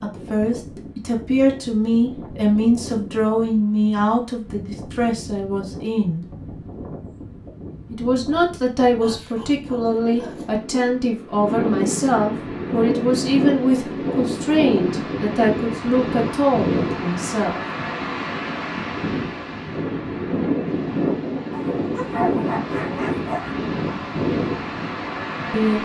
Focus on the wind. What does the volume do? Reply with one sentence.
The loudness of the wind goes up.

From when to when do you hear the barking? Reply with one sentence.
You can hear the barking from 9.0 to 10.6 s and from 21.5 to 23.6 s.